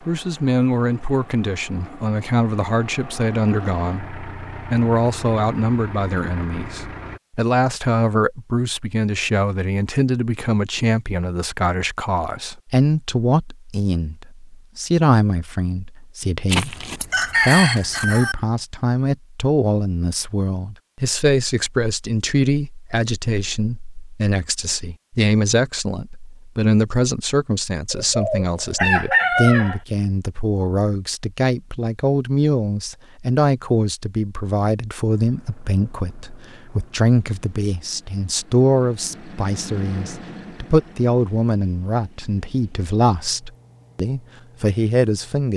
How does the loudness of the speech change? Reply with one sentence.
The volume of the speech stays about the same.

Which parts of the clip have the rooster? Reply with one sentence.
The rooster can be heard from 16.5 to 18.4 s and from 27.9 to 29.8 s.